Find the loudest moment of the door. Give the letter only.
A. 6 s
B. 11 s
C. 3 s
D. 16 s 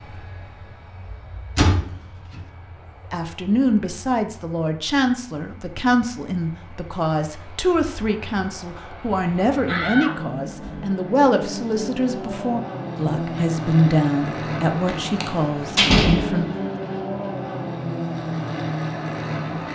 D.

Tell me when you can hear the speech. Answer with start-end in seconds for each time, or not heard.
3.1-16.5.